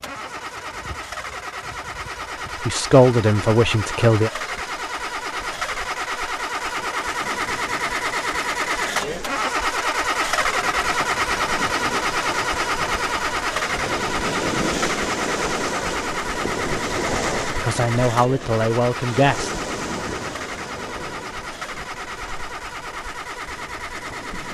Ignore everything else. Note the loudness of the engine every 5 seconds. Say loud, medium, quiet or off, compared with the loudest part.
medium, loud, loud, medium, medium.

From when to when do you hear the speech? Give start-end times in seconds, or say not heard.
2.6-4.3, 17.4-19.5.